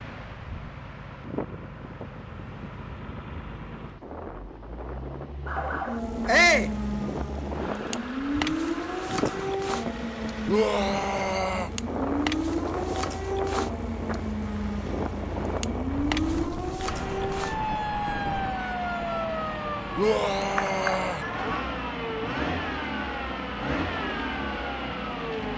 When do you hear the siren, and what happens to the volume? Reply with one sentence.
The siren can be heard from 5.5 to 21.6 s, at a steady volume.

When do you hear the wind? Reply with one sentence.
You can hear the wind from 0.0 to 18.5 s.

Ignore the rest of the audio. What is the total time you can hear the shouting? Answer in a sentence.
The shouting can be heard for 3 seconds in total.